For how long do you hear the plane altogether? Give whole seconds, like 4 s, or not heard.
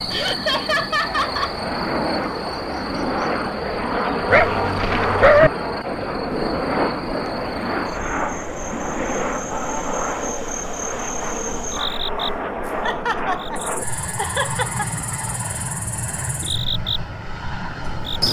18 s.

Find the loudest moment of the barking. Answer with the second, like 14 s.
5 s.